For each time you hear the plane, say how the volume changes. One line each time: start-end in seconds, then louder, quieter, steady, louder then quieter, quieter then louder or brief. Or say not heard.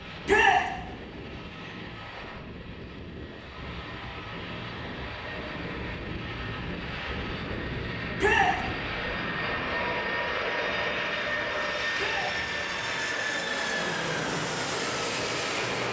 0.0-15.8 louder.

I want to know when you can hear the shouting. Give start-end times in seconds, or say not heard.
0.2-0.7, 8.2-8.6, 11.9-12.3.